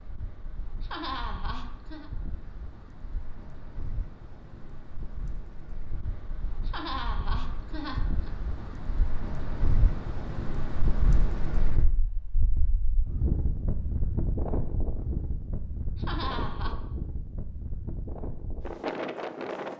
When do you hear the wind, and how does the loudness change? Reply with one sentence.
The wind can be heard from 0.0 to 19.7 s, getting louder.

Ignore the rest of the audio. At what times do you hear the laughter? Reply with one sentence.
The laughter can be heard from 0.8 to 2.1 s, from 6.7 to 8.3 s and from 15.9 to 16.8 s.